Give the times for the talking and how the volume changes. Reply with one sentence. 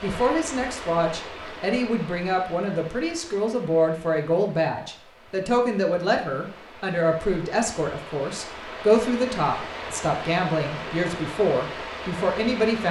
You can hear the talking from 0.0 to 12.8 s, at a steady volume.